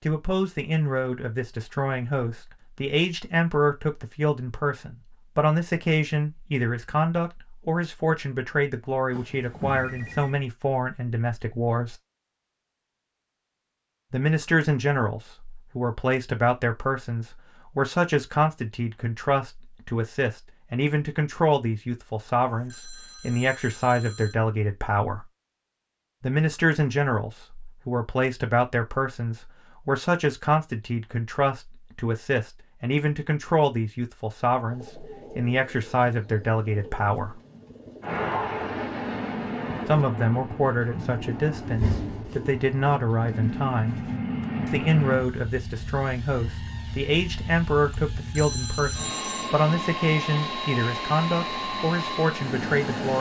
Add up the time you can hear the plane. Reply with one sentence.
The plane can be heard for 15 seconds in total.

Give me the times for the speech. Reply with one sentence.
The speech can be heard from 0.1 to 11.9 s, from 14.1 to 25.2 s, from 26.2 to 37.4 s, from 39.9 to 44.0 s and from 44.7 to 53.1 s.